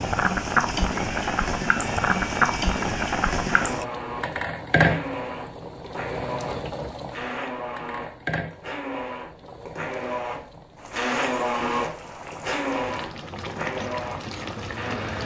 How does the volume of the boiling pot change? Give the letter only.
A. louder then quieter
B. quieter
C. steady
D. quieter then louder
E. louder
D.